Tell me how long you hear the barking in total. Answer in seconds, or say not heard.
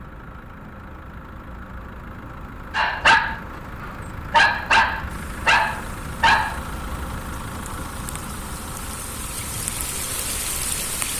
4 s.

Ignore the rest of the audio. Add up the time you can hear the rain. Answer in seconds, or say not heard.
6 s.